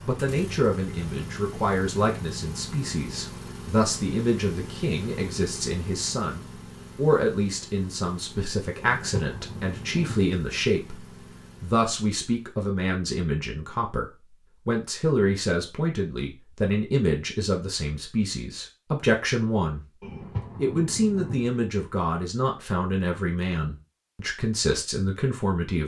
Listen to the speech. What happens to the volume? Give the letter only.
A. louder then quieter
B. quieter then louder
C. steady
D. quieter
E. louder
C.